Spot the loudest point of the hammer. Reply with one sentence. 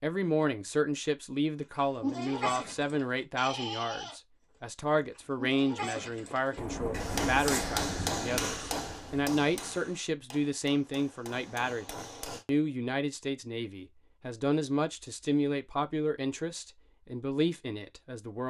The volume of the hammer peaks at 8 seconds.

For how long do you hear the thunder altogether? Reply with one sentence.
You can hear the thunder for 3 seconds altogether.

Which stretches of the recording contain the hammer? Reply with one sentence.
You can hear the hammer from 7.0 to 12.4 s.